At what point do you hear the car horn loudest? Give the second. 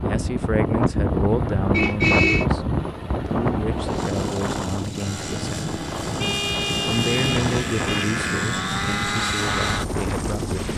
2 s.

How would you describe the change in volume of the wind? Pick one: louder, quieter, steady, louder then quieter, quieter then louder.
quieter.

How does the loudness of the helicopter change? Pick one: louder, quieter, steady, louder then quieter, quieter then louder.
louder.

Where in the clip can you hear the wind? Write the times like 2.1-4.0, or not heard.
0.0-10.5.